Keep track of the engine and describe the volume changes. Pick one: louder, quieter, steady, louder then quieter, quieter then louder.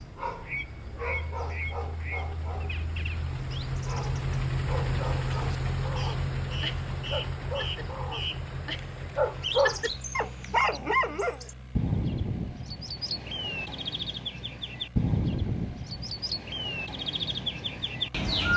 louder then quieter.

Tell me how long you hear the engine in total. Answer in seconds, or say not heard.
18 s.